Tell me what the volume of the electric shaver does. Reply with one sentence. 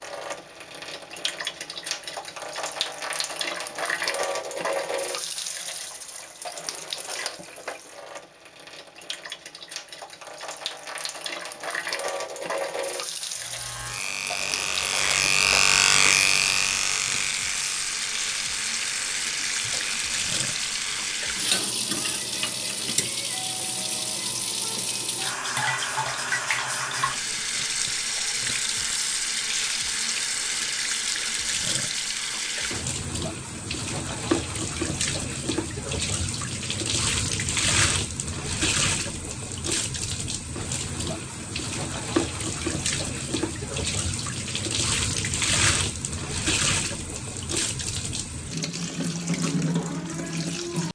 The volume of the electric shaver goes up, then down.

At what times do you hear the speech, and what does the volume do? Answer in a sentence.
You can't hear the speech here.